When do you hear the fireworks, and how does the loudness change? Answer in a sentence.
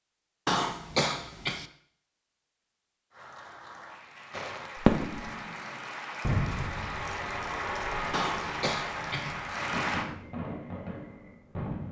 The fireworks can be heard from 4.3 to 11.8 s, getting quieter.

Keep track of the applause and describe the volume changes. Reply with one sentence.
The loudness of the applause goes up.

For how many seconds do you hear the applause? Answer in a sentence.
The applause can be heard for 7 seconds in total.